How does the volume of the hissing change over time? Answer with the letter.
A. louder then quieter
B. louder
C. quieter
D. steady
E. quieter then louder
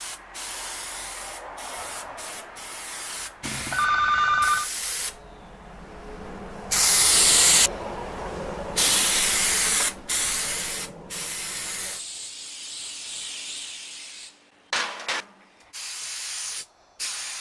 A.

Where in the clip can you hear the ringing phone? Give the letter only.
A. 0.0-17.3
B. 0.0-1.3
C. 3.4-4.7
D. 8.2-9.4
C.